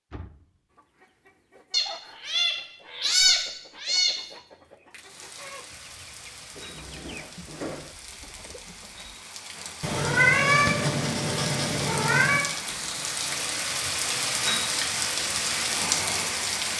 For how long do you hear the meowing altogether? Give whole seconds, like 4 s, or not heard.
5 s.